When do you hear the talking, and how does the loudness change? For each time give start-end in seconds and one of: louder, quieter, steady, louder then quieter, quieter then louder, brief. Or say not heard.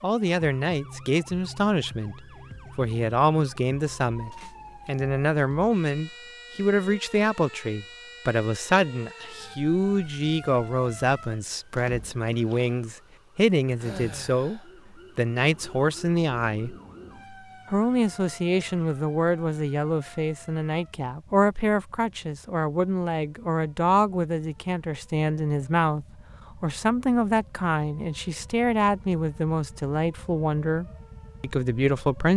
0.0-16.8 steady
17.7-32.3 steady.